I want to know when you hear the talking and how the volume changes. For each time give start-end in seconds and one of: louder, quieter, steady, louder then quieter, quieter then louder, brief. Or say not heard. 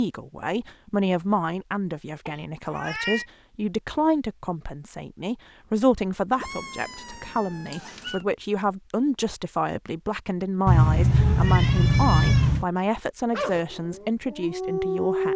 0.0-15.3 steady.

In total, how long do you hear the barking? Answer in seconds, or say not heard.
2 s.